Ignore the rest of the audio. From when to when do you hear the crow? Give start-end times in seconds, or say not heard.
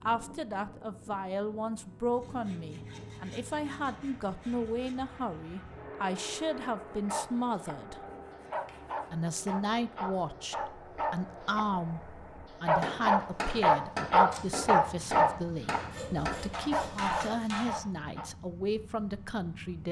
not heard.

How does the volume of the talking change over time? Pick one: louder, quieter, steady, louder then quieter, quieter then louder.
steady.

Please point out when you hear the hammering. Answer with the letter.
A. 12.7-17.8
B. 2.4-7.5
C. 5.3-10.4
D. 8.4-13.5
A.